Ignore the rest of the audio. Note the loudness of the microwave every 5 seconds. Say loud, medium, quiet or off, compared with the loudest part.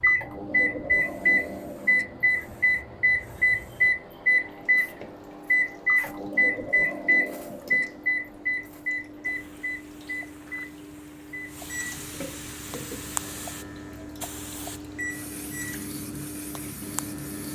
loud, loud, quiet, quiet.